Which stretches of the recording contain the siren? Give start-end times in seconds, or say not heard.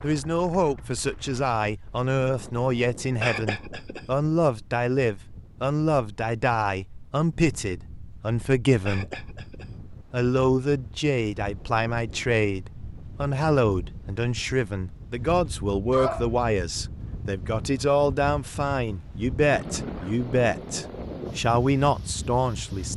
not heard.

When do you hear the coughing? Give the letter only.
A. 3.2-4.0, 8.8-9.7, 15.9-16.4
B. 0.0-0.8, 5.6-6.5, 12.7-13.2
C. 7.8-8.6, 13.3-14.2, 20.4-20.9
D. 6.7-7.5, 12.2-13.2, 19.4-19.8
A.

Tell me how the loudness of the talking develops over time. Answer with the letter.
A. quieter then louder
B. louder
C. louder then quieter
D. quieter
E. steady
E.